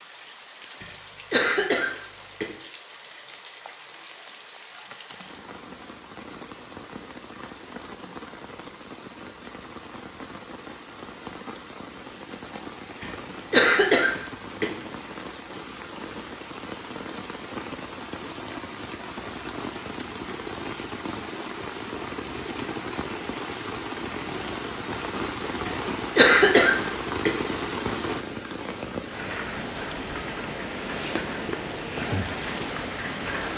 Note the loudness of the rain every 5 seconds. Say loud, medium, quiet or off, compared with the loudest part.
quiet, medium, medium, medium, loud, loud, loud.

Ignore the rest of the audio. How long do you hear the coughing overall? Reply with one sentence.
You can hear the coughing for 5 seconds altogether.